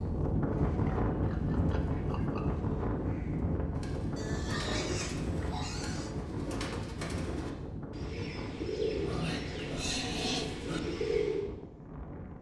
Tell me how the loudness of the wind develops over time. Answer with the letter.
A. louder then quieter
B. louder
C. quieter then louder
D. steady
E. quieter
E.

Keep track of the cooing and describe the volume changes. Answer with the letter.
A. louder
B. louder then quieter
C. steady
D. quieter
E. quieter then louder
A.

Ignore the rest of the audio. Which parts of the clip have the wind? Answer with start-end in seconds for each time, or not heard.
0.0-12.3.